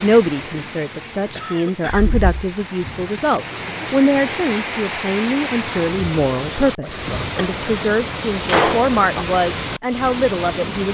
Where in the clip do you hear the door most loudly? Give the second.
9 s.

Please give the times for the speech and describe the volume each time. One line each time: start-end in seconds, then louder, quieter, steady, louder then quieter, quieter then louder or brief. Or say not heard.
0.0-10.8 steady.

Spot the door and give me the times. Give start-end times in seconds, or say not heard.
1.9-2.5, 8.3-9.2.